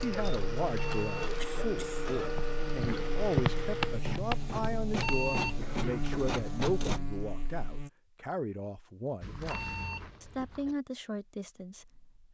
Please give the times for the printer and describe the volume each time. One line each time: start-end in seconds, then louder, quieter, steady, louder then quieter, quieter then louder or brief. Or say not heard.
0.0-7.0 steady.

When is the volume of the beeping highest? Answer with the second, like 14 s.
5 s.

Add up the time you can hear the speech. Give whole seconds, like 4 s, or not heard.
12 s.